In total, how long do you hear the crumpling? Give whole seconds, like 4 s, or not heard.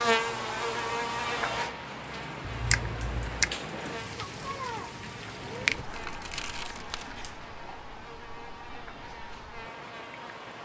2 s.